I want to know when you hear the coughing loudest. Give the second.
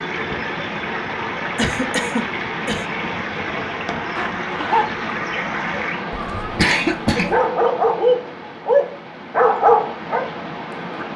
7 s.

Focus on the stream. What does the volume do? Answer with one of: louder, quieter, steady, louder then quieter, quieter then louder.
quieter.